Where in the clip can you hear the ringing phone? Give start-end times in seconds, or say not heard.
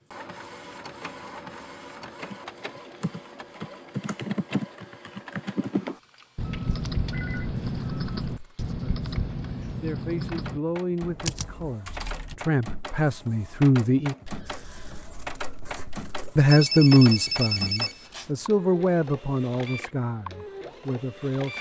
7.1-7.5, 16.4-18.3.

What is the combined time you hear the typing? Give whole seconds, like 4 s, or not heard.
10 s.